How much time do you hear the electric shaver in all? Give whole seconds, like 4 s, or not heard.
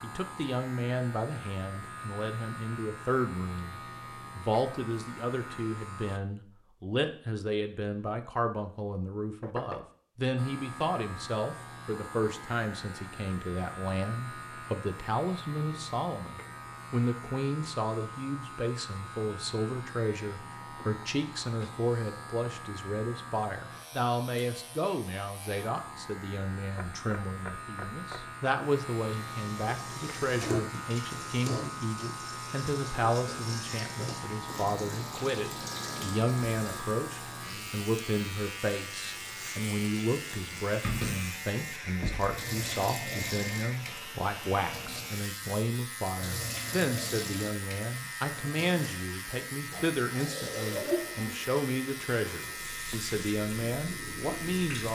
51 s.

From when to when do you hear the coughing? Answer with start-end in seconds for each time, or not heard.
not heard.